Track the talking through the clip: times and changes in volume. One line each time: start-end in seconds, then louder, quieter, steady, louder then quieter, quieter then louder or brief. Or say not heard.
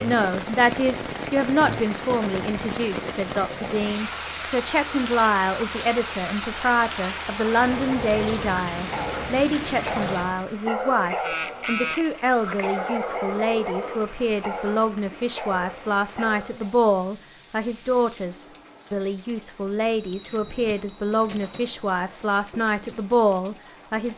0.0-24.1 steady.